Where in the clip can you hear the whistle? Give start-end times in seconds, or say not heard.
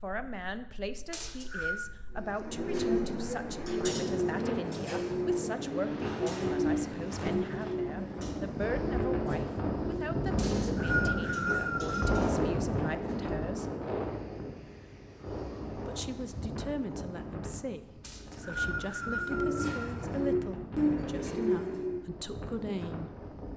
1.1-1.8, 10.3-12.2, 18.0-19.9.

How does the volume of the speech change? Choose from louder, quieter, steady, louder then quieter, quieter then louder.
steady.